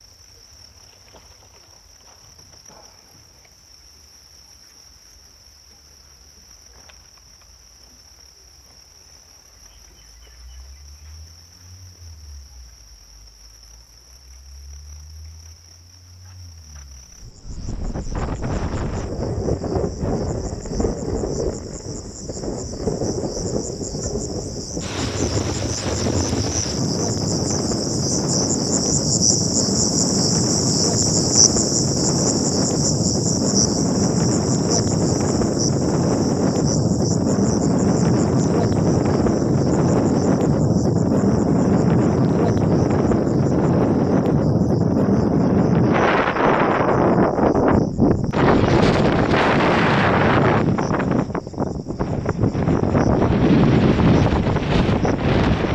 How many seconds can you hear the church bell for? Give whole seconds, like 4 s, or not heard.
not heard.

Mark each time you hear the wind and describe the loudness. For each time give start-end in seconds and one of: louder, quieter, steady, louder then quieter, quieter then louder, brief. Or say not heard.
17.1-55.7 louder.